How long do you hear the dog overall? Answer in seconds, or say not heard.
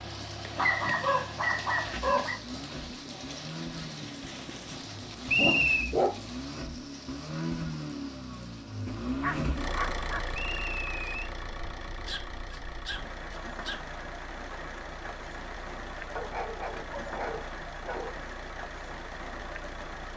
9 s.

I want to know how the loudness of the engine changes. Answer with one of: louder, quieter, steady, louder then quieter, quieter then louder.
louder then quieter.